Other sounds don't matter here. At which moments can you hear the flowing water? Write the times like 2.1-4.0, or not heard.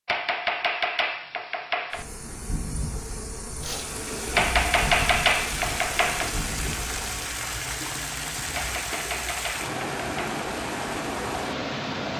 3.6-12.1.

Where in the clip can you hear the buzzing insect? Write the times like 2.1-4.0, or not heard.
1.9-7.3.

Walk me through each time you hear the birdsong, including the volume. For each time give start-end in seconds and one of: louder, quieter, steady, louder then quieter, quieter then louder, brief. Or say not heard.
not heard.